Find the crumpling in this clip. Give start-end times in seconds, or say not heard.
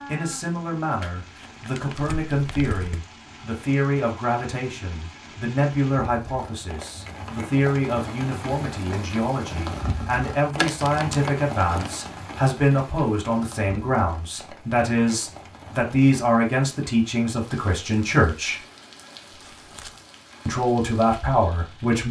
1.0-3.0, 10.6-11.9, 19.4-20.0.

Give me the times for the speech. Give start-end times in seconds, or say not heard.
0.1-18.6, 20.4-22.0.